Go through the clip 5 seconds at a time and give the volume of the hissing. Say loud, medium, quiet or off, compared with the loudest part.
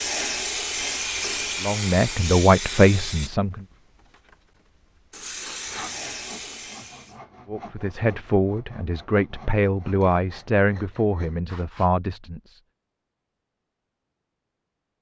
loud, medium, off.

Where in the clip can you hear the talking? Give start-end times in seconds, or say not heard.
1.6-3.6, 7.5-12.6.